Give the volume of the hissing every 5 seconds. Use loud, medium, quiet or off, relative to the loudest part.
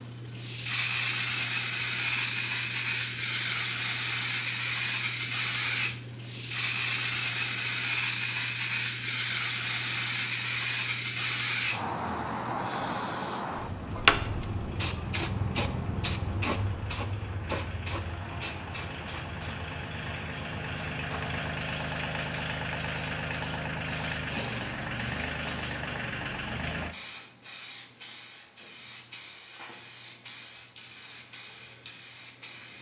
loud, loud, loud, medium, quiet, quiet, quiet.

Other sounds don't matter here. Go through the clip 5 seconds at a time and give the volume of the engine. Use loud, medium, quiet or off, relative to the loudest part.
quiet, quiet, quiet, medium, loud, loud, off.